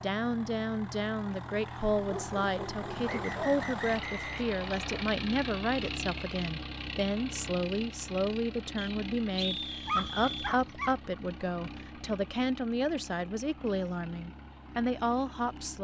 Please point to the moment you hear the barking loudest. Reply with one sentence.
The loudest moment of the barking is at 10 seconds.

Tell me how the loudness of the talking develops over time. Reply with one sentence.
The loudness of the talking stays about the same.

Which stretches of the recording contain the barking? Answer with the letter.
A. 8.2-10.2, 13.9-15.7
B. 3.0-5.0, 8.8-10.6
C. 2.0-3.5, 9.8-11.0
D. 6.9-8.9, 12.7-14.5
C.